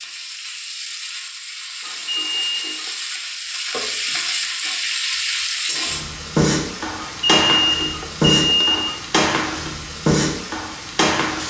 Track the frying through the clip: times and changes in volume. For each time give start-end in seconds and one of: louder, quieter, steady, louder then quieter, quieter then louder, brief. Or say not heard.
0.0-11.4 louder.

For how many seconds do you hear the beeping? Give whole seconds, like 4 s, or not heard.
3 s.